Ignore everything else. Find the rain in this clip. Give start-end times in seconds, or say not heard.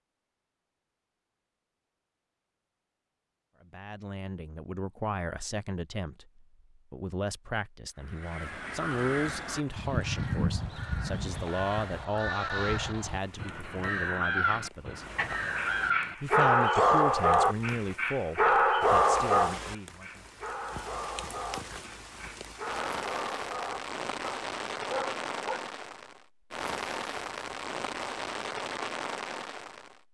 8.3-30.1.